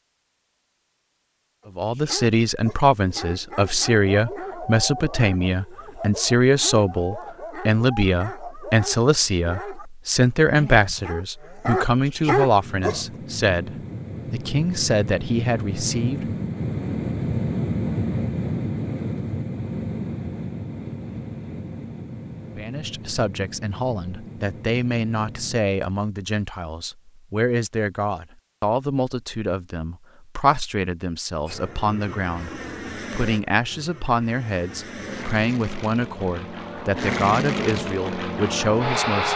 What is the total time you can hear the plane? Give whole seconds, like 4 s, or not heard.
21 s.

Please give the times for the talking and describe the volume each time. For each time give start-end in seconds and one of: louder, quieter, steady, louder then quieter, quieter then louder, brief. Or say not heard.
1.8-16.2 steady
22.6-39.3 steady.